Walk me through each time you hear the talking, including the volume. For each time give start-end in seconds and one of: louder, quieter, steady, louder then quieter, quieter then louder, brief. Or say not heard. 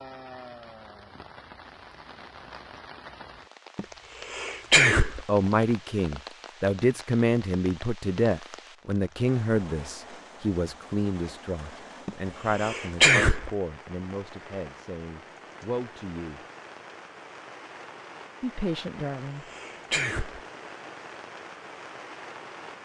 5.2-16.4 quieter
18.4-19.4 brief.